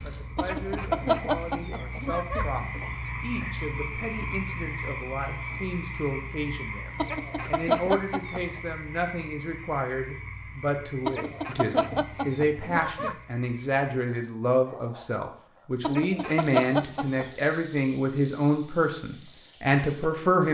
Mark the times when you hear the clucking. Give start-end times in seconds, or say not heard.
0.3-3.1, 7.0-8.4, 11.1-13.2, 15.8-17.4.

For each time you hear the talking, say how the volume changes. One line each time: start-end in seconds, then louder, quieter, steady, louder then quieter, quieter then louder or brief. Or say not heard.
0.0-20.4 louder.